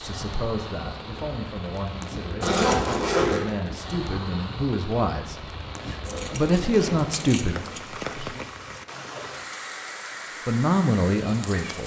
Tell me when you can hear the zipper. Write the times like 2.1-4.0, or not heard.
2.4-3.5, 6.7-7.1.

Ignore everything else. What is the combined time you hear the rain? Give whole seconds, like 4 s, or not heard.
12 s.